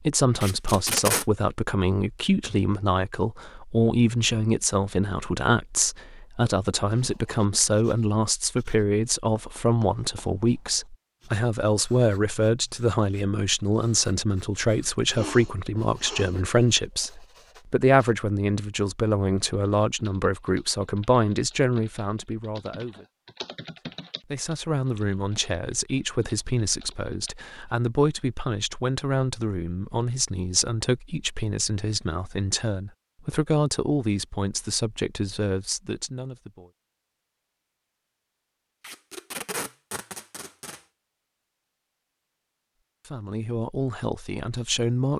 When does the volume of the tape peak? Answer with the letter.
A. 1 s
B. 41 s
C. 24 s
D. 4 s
A.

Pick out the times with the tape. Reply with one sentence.
You can hear the tape from 0.4 to 1.2 s and from 38.8 to 40.8 s.